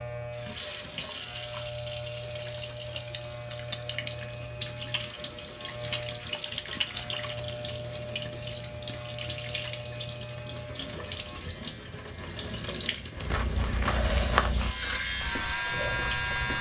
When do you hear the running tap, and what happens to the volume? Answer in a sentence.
The running tap can be heard from 0.1 to 16.5 s, at a steady volume.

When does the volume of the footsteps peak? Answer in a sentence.
The volume of the footsteps peaks at 14 seconds.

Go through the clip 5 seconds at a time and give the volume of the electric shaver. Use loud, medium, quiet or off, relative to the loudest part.
quiet, quiet, quiet, loud.